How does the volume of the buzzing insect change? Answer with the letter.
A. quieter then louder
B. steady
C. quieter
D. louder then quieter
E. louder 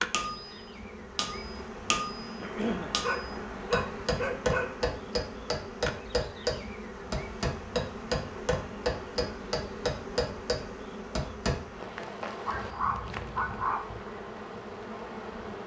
B.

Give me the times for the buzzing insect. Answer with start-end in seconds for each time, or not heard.
0.0-15.6.